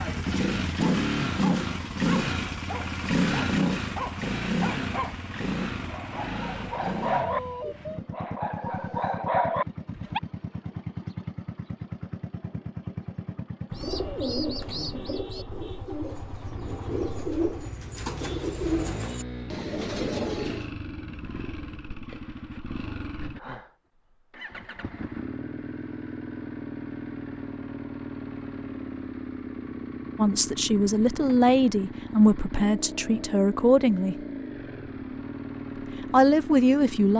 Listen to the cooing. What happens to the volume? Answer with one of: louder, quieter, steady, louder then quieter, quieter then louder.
quieter then louder.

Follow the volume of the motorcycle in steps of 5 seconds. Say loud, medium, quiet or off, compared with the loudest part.
loud, medium, medium, quiet, quiet, medium, medium, medium.